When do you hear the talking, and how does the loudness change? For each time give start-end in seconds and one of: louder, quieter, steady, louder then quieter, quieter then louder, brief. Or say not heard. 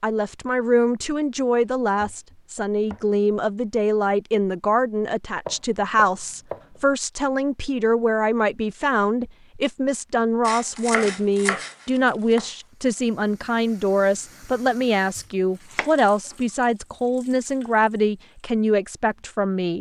0.0-19.7 steady.